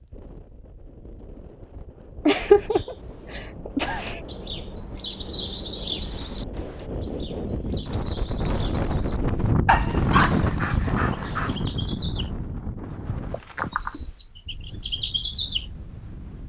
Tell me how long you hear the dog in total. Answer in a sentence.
The dog can be heard for 2 seconds in total.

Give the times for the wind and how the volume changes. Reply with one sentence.
The wind can be heard from 0.0 to 16.4 s, getting louder then quieter.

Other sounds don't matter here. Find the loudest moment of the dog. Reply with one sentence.
The loudest moment of the dog is at 10 seconds.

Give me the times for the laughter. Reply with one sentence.
You can hear the laughter from 2.2 to 4.2 s.